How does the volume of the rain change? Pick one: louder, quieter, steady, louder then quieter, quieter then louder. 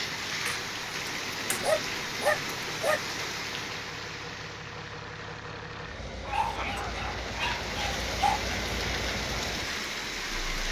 quieter then louder.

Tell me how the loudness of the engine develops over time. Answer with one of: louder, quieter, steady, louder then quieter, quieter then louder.
louder.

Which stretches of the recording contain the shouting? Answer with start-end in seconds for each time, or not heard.
6.4-6.8.